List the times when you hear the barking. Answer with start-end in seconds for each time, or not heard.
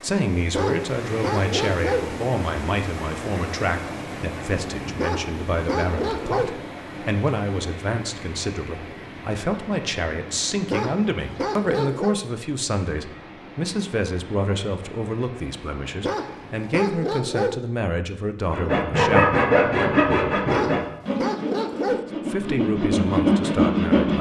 0.5-2.1, 5.0-6.5, 10.7-12.2, 16.0-17.6, 20.5-22.1.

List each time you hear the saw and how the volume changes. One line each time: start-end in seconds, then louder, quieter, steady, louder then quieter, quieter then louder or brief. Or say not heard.
18.5-24.1 quieter then louder.